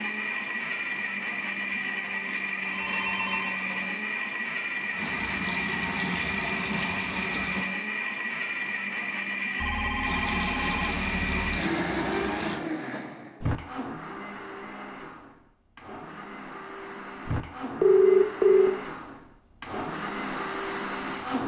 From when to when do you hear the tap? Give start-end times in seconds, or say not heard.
4.9-7.7, 10.0-12.6.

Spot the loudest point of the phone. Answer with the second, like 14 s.
18 s.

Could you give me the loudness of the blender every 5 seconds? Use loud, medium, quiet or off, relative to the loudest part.
loud, loud, loud, medium, loud.